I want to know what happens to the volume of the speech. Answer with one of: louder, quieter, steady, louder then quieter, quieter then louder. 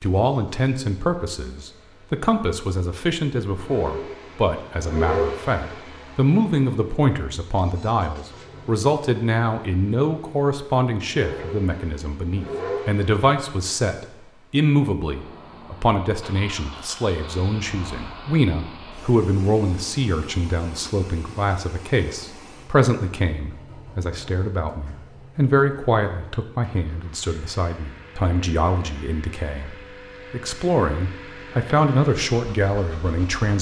steady.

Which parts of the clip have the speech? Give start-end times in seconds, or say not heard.
0.0-29.7, 30.3-33.5.